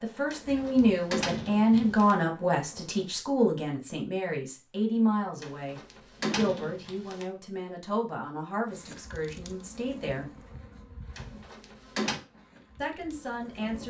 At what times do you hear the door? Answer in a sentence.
The door can be heard from 0.3 to 2.1 s, from 5.4 to 7.2 s and from 11.2 to 12.2 s.